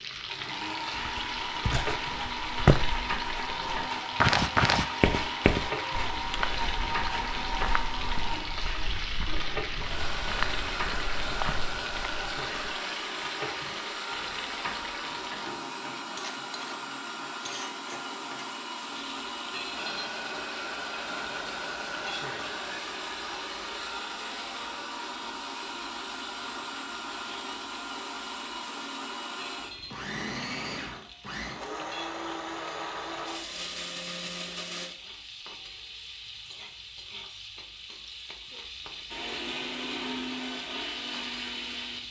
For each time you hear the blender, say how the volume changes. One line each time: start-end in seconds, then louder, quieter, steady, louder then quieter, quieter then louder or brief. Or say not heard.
0.0-34.9 steady
39.1-42.0 brief.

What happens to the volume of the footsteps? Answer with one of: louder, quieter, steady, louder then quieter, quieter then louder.
quieter then louder.